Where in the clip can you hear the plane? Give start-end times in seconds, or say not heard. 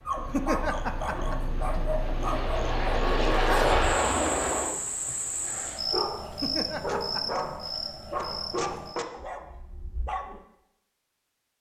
0.0-4.7.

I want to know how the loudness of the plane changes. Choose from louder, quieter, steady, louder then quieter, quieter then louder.
louder.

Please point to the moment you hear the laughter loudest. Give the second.
1 s.